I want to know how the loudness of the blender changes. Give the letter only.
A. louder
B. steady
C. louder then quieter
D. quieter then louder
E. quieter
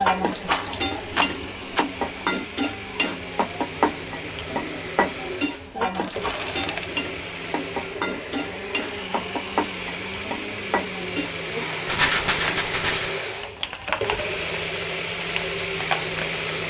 A.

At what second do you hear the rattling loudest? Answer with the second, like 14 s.
12 s.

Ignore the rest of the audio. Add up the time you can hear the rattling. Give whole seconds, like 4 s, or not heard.
4 s.